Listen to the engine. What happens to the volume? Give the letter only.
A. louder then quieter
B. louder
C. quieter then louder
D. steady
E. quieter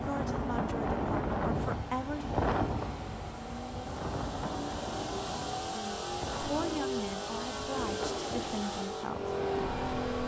B.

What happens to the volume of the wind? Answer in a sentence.
The loudness of the wind goes down.